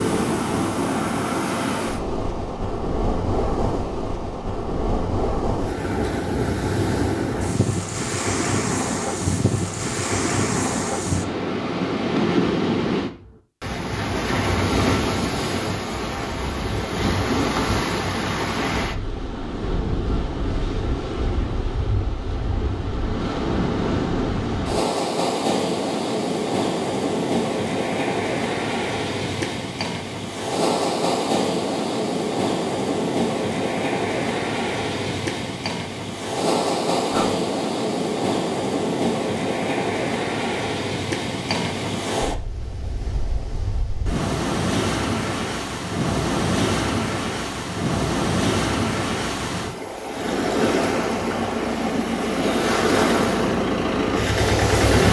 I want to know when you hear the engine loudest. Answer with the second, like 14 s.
54 s.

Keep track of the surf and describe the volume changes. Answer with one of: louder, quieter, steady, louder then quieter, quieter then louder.
steady.